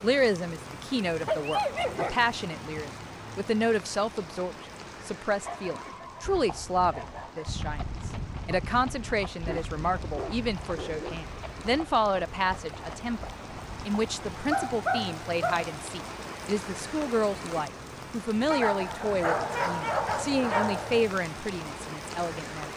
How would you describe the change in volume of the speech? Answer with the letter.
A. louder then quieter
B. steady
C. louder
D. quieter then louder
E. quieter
B.